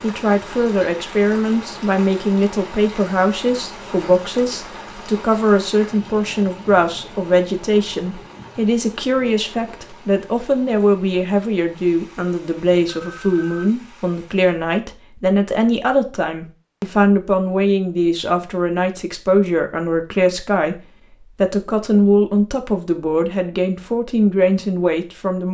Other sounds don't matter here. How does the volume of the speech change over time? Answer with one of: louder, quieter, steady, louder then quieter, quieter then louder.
steady.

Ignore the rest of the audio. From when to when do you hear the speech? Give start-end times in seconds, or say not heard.
0.0-20.8, 21.4-25.4.